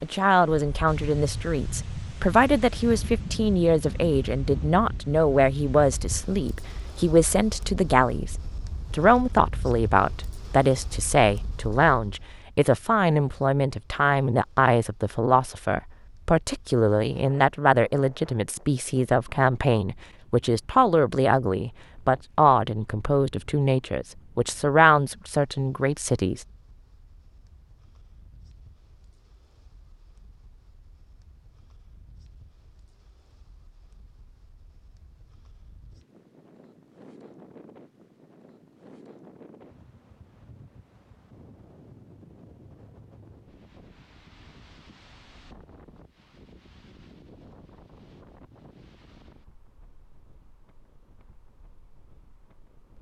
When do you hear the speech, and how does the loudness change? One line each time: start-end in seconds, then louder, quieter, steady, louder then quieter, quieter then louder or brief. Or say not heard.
0.0-26.4 steady.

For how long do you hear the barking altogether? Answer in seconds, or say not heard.
not heard.